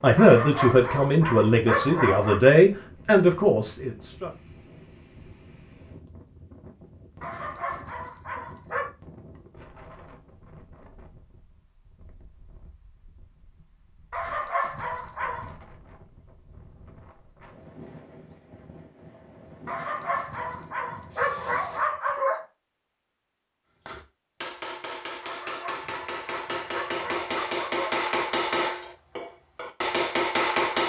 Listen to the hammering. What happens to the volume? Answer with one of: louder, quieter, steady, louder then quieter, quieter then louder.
louder.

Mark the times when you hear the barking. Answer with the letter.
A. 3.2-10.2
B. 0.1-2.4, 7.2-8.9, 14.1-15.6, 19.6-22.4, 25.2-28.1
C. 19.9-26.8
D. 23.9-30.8
B.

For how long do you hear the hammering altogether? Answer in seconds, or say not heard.
7 s.